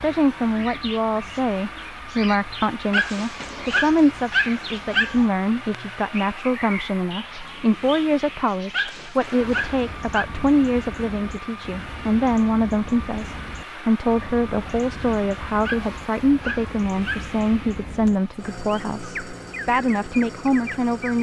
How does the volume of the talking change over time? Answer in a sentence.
The loudness of the talking stays about the same.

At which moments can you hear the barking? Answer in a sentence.
The barking can be heard from 2.9 to 5.2 s, from 8.7 to 10.3 s and from 15.7 to 17.3 s.